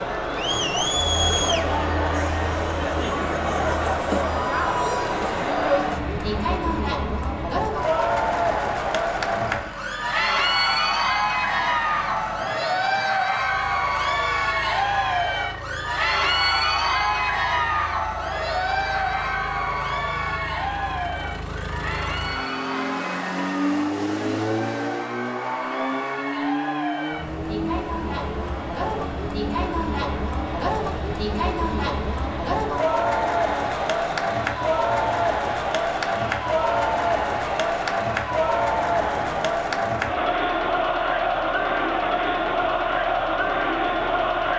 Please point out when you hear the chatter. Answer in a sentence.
You can hear the chatter from 0.0 to 44.5 s.